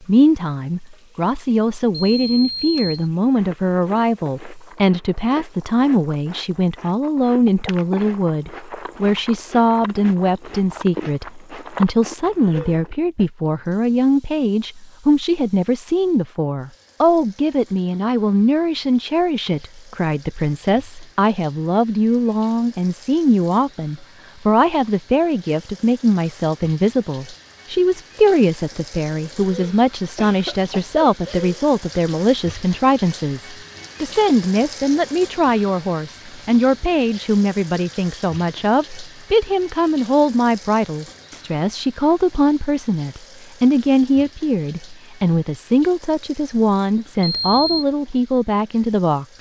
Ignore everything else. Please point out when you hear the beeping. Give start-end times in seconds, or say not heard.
2.0-3.0, 47.2-47.9.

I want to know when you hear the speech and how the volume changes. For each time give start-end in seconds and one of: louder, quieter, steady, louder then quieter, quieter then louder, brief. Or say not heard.
0.0-49.3 steady.